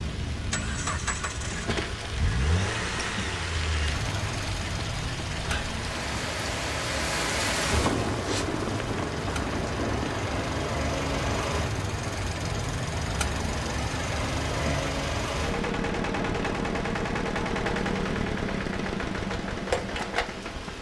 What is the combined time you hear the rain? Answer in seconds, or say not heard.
21 s.